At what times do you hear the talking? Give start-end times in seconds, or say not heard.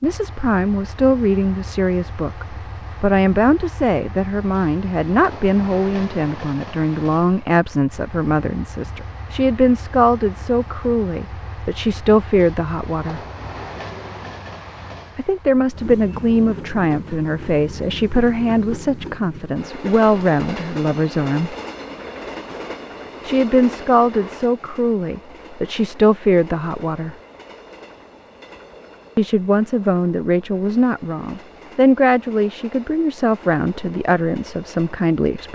0.0-13.2, 15.2-21.6, 23.2-27.1, 29.1-35.5.